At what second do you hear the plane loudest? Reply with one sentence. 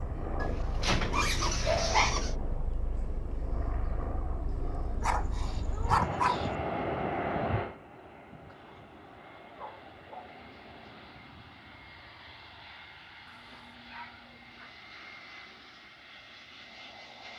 The volume of the plane peaks at 7 seconds.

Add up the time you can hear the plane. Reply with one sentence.
The plane can be heard for 17 seconds in total.